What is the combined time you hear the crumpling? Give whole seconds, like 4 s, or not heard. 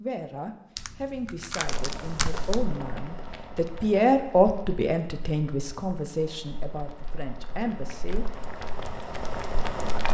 2 s.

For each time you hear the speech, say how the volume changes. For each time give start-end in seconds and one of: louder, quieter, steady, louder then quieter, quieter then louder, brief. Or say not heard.
0.0-8.2 louder then quieter.